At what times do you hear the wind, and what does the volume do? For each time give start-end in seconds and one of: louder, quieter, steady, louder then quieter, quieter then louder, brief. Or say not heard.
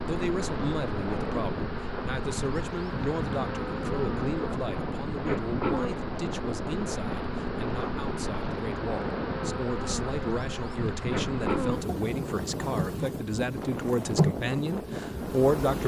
0.0-15.8 steady.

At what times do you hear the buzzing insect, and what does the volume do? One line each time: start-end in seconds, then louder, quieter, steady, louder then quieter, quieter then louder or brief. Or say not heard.
0.0-15.8 steady.